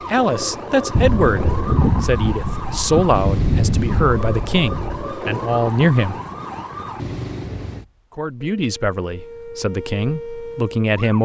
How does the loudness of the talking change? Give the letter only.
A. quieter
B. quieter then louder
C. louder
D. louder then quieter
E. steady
E.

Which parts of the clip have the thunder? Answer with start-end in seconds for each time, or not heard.
0.9-5.1.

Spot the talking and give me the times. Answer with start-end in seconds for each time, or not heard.
0.1-6.2, 8.2-11.2.